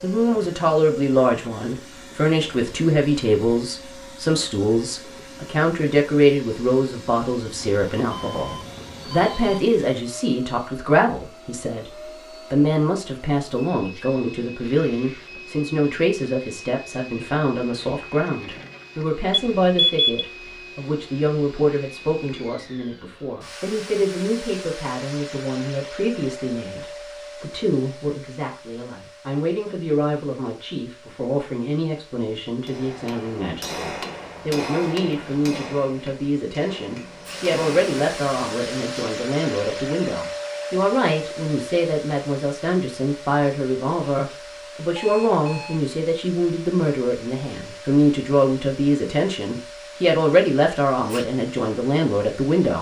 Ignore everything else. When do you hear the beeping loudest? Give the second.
20 s.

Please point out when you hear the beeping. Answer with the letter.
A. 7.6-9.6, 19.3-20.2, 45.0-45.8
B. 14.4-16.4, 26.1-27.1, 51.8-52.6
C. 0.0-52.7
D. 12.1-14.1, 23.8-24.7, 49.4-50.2
A.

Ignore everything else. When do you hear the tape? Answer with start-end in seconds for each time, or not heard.
not heard.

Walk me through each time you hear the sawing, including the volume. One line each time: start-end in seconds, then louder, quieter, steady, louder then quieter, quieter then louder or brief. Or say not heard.
not heard.